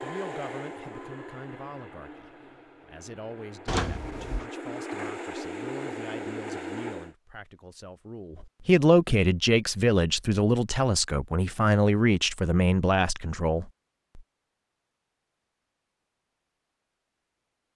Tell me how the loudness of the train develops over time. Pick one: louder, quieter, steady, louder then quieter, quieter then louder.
quieter then louder.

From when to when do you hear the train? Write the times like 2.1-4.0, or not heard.
0.0-7.2.